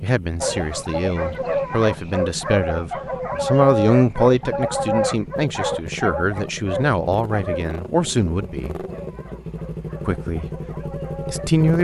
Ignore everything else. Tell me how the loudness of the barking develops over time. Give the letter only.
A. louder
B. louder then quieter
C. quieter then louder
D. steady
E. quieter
E.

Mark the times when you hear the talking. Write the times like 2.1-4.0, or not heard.
0.0-8.8, 10.1-10.5, 11.2-11.7.